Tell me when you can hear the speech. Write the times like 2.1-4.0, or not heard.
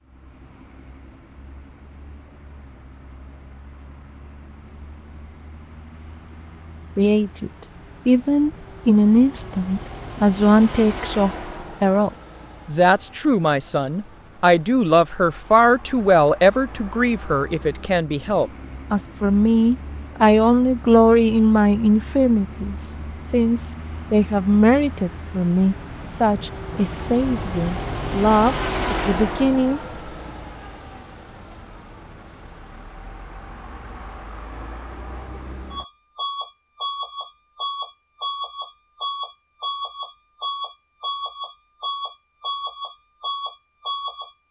7.0-29.8.